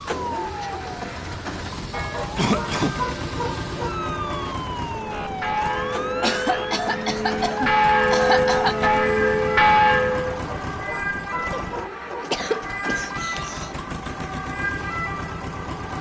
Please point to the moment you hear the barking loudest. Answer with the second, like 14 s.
3 s.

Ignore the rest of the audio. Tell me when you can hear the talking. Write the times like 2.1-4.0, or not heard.
not heard.